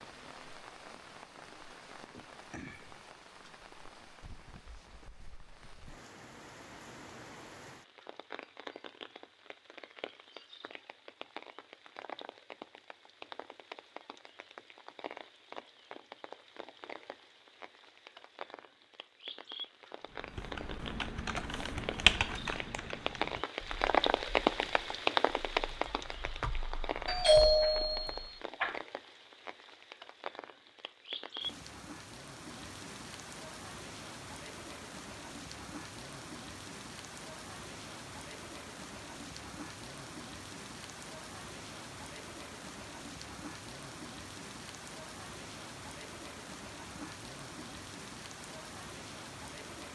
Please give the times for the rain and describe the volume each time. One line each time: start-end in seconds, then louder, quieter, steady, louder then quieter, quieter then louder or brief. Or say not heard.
0.0-49.9 louder then quieter.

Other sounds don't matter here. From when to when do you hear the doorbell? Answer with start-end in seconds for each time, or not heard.
27.1-28.8.